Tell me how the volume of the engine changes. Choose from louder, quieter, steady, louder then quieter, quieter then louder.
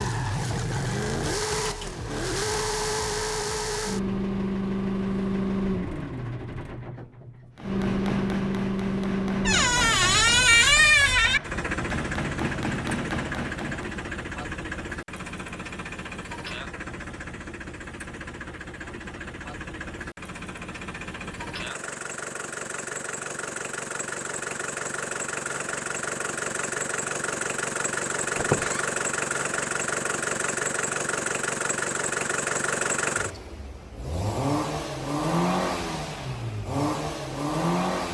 quieter then louder.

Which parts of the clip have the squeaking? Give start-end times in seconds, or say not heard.
9.4-11.4, 28.4-28.9.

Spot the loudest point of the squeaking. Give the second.
11 s.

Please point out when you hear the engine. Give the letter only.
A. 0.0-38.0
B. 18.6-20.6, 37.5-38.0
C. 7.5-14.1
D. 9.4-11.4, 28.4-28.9
A.